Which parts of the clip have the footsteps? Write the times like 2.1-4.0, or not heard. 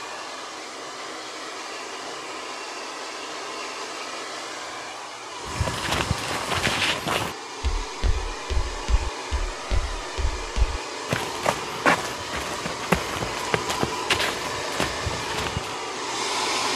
5.5-15.8.